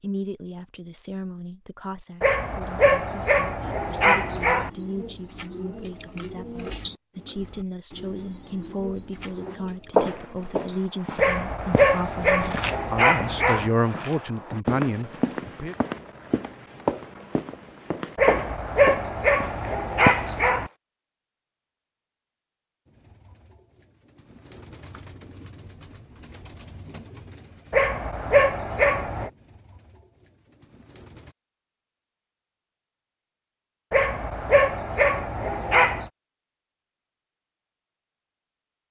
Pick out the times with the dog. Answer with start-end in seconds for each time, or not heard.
2.2-4.7, 11.2-13.7, 18.1-20.7, 27.7-29.3, 33.9-36.1.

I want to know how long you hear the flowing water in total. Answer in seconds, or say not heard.
not heard.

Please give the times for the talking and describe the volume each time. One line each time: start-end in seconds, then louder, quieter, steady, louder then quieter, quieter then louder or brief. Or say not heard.
0.0-15.8 louder.